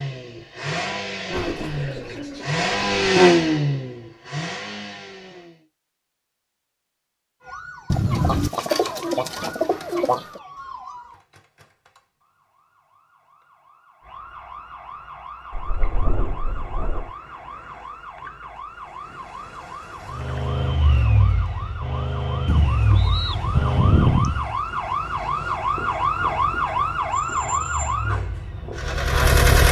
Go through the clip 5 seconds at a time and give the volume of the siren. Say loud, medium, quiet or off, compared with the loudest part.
off, quiet, quiet, quiet, medium, loud.